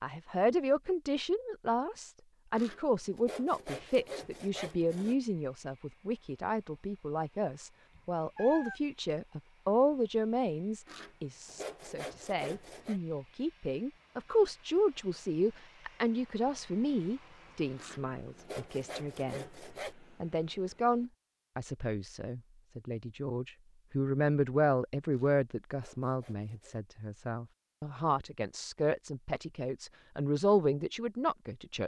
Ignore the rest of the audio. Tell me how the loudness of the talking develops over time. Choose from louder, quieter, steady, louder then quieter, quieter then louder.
steady.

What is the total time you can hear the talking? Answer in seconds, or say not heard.
31 s.